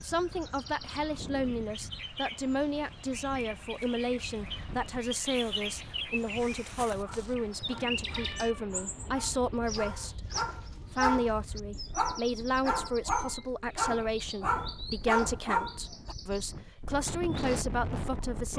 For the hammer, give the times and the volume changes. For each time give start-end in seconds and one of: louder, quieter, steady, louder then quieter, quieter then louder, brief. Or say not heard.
not heard.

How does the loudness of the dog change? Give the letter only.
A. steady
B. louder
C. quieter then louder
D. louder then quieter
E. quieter
B.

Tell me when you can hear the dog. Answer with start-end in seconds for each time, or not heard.
7.0-11.3, 11.9-16.1.